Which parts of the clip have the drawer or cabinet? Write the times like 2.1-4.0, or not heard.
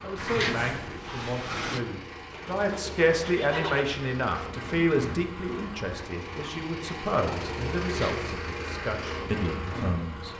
0.1-1.8, 7.8-8.3.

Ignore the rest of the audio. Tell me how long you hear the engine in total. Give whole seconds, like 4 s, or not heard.
10 s.